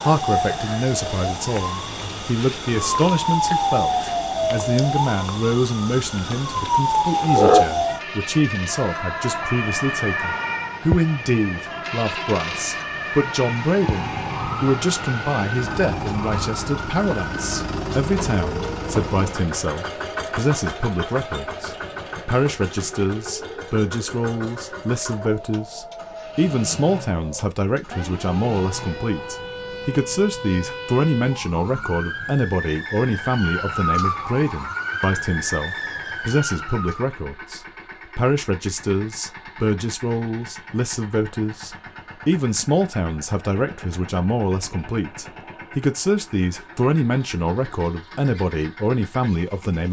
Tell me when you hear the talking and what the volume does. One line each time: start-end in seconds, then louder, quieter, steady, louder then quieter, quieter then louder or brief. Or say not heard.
0.0-49.8 steady.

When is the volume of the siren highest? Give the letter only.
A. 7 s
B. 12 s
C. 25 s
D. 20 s
A.